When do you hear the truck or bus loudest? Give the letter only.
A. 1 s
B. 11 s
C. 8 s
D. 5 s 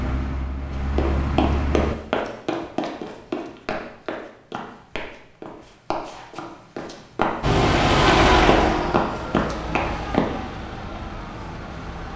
C.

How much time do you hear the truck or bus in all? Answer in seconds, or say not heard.
7 s.